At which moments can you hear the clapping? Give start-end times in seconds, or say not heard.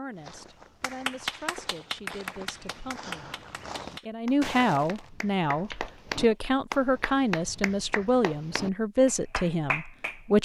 0.8-10.2.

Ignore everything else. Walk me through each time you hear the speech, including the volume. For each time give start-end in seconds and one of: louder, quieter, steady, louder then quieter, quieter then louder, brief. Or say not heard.
0.0-10.4 louder.